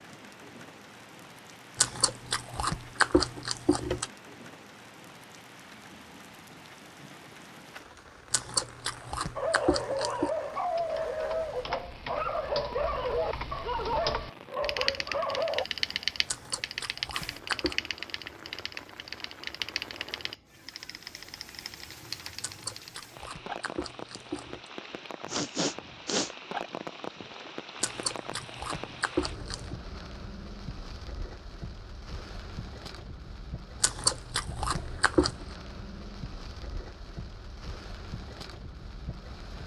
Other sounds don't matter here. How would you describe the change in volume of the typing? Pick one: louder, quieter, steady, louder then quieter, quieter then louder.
louder then quieter.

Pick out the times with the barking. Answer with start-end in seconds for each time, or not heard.
9.3-15.7.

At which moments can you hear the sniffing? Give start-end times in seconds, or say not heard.
25.2-26.3.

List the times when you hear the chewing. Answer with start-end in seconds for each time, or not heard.
1.8-4.0, 8.3-10.3, 16.2-17.8, 22.4-24.7, 27.8-29.8, 33.8-35.5.